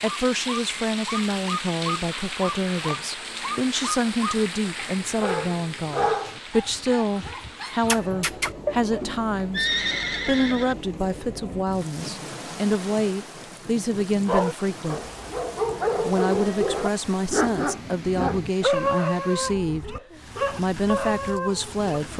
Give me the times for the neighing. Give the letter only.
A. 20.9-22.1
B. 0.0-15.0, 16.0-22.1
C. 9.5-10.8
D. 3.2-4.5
C.